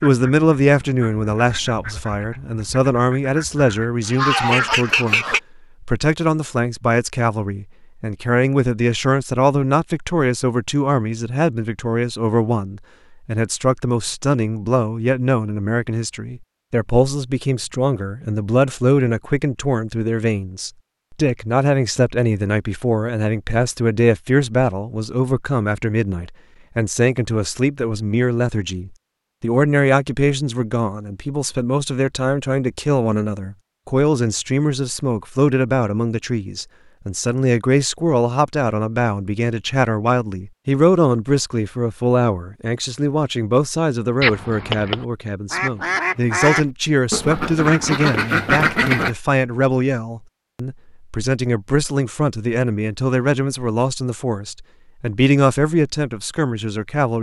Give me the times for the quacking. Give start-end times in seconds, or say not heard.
0.0-5.4, 44.2-49.1.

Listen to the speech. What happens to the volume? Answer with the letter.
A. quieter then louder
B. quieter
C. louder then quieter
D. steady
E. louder
D.